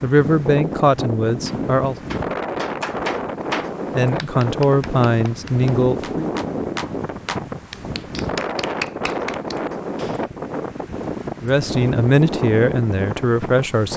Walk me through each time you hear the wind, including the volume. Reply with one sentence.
The wind can be heard from 0.0 to 13.9 s, at a steady volume.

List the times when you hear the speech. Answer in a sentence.
The speech can be heard from 0.0 to 1.9 s, from 3.9 to 6.3 s and from 11.4 to 13.9 s.